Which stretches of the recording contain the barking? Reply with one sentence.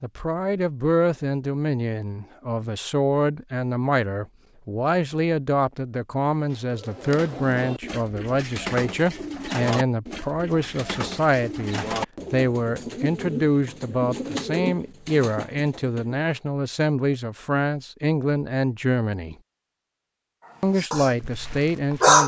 The barking can be heard from 20.8 to 22.2 s.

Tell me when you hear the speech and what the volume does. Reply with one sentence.
The speech can be heard from 0.0 to 19.4 s, at a steady volume; and briefly from 20.6 to 22.2 s.